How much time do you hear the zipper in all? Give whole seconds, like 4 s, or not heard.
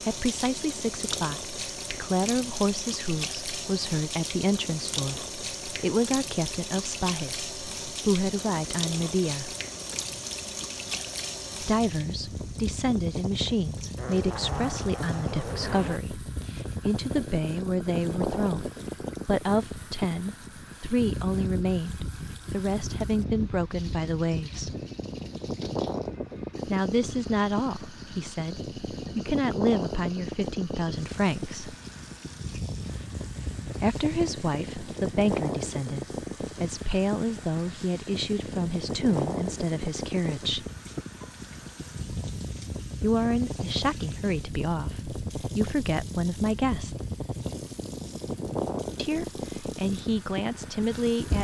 2 s.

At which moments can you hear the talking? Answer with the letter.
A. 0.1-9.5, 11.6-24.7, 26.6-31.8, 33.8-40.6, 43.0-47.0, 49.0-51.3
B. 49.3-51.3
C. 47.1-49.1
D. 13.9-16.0
A.